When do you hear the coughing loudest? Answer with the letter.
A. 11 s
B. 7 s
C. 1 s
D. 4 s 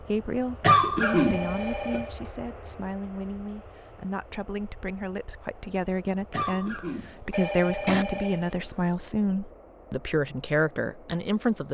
C.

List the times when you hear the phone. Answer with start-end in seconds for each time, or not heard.
1.0-2.2, 7.3-8.8.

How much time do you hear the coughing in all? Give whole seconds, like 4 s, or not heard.
3 s.